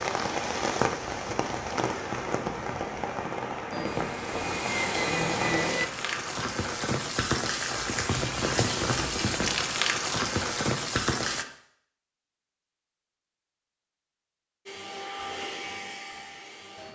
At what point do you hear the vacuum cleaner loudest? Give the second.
5 s.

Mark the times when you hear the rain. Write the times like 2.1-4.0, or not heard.
0.0-11.4.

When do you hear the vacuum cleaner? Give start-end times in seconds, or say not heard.
3.7-5.9, 14.7-16.9.